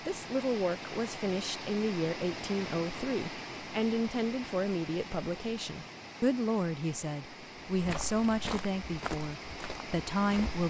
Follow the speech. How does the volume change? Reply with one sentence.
The loudness of the speech stays about the same.